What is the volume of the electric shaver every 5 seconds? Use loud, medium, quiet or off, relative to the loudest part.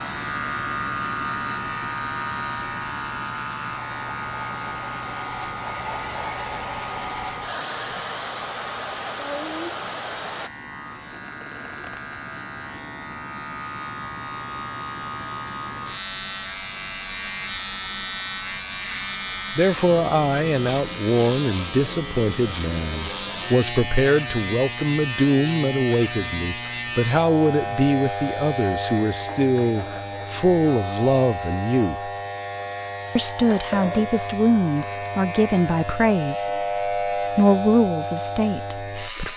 loud, medium, medium, loud, loud, loud, loud, loud.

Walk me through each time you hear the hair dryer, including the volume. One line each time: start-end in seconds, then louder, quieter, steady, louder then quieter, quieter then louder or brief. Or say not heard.
0.2-10.5 louder.